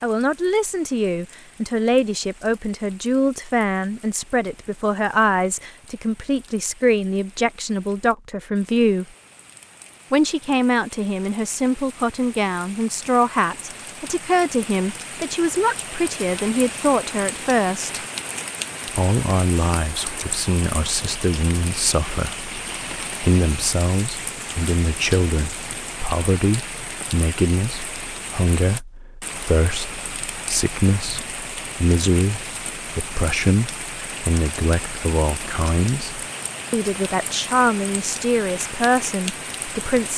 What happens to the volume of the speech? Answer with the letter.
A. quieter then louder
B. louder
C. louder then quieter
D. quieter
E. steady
E.